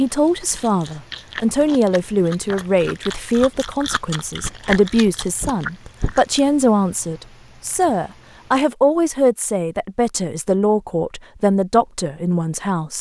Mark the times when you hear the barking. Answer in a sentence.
You can't hear the barking here.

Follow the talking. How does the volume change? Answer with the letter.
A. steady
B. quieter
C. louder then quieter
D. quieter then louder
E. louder
A.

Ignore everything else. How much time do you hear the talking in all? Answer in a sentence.
The talking can be heard for 13 seconds in total.